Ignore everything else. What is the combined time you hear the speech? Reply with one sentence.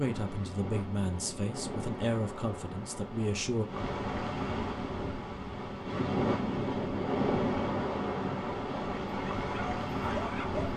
The speech can be heard for 4 seconds in total.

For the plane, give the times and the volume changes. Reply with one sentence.
You can't hear the plane here.